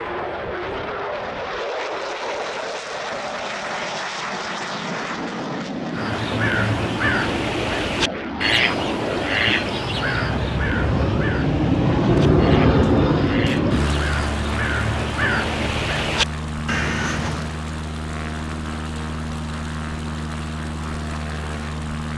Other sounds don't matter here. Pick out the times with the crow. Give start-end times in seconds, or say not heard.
5.9-17.6.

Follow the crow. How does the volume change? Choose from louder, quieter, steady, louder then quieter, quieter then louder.
quieter then louder.